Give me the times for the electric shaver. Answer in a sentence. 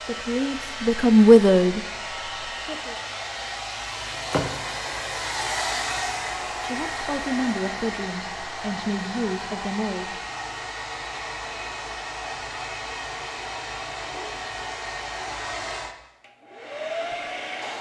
The electric shaver can't be heard in this clip.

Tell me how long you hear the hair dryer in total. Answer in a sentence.
You can hear the hair dryer for 18 seconds altogether.